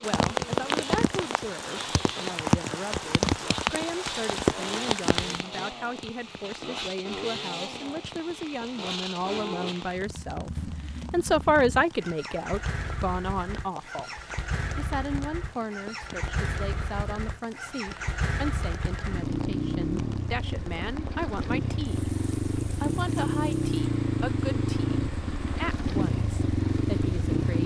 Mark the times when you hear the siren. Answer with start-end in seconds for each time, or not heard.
not heard.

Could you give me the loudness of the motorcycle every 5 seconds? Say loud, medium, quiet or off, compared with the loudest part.
medium, medium, medium, medium, loud, loud.